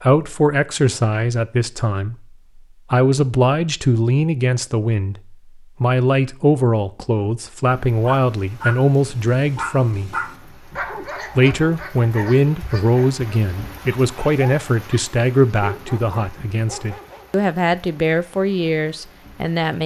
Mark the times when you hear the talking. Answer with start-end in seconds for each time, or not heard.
0.0-10.2, 11.3-19.8.